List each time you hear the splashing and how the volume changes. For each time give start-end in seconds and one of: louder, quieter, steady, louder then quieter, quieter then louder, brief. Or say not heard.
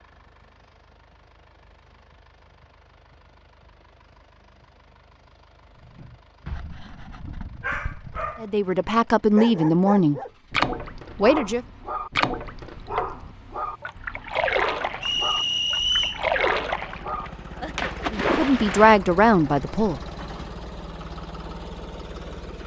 10.5-19.0 quieter then louder.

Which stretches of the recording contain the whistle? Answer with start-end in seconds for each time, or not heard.
15.0-16.2.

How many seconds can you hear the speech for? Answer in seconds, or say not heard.
4 s.